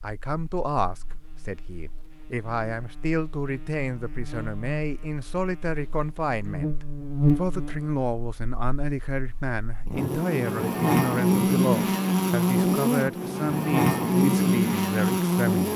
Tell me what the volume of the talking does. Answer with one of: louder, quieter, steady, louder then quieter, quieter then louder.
steady.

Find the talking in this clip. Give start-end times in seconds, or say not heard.
0.0-15.7.